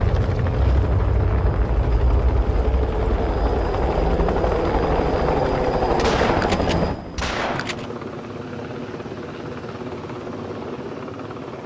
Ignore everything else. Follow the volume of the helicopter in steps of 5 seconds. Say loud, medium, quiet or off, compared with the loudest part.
loud, loud, medium.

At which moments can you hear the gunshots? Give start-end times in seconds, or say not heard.
6.0-7.9.